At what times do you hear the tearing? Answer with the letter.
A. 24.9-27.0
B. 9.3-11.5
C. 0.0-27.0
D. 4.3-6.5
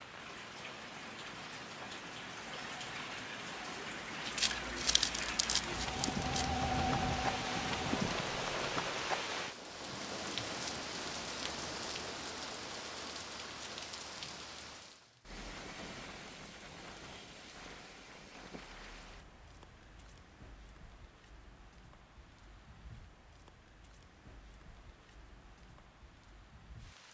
D.